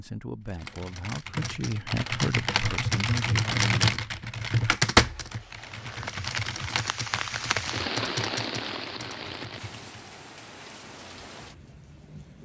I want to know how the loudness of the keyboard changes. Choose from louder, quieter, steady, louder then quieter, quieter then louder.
louder then quieter.